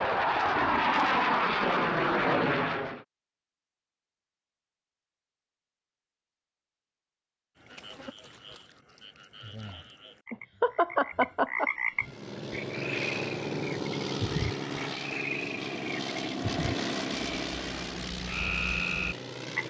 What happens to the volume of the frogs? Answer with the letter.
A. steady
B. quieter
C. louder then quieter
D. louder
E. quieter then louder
D.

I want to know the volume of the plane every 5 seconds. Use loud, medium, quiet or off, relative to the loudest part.
loud, off, medium, medium.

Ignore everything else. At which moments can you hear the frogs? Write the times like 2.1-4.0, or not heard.
7.5-19.6.